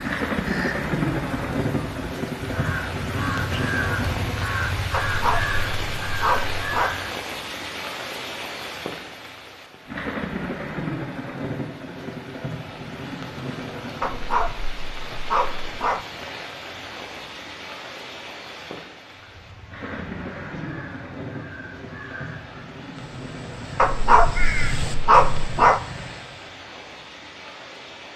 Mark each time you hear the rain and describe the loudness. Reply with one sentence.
You can hear the rain from 0.0 to 28.1 s, getting quieter.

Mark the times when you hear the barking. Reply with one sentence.
You can hear the barking from 4.9 to 7.0 s, from 14.0 to 16.0 s and from 23.8 to 25.8 s.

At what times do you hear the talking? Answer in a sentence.
The talking can't be heard in this clip.